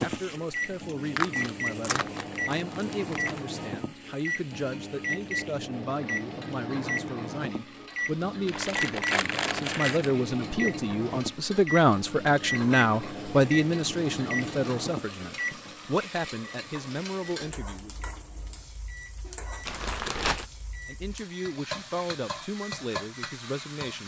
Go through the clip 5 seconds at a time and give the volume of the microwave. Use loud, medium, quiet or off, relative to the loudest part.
loud, loud, loud, medium, quiet.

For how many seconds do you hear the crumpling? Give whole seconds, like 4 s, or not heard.
5 s.